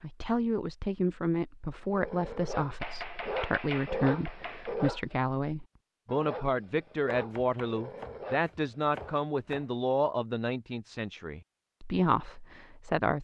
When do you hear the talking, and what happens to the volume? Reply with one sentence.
The talking can be heard from 0.0 to 13.1 s, at a steady volume.